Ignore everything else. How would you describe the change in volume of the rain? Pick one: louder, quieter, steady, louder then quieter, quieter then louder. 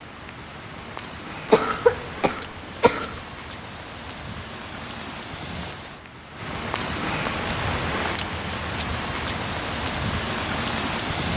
louder.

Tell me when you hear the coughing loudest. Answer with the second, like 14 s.
2 s.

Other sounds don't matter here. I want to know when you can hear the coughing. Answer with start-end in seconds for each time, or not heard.
1.5-3.2.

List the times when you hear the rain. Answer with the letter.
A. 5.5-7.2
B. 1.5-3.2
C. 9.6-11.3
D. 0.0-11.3
D.